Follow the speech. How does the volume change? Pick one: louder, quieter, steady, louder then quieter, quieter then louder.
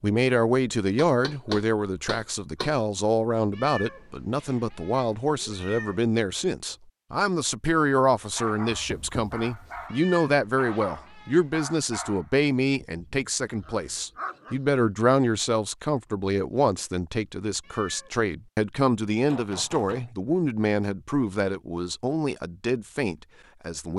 steady.